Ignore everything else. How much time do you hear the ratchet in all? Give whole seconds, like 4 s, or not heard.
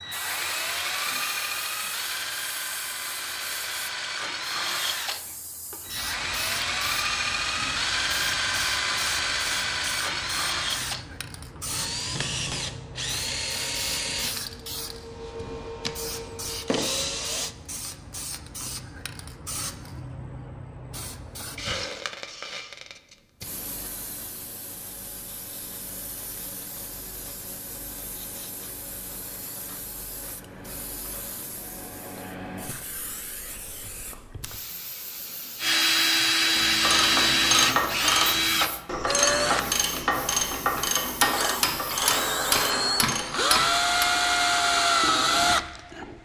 7 s.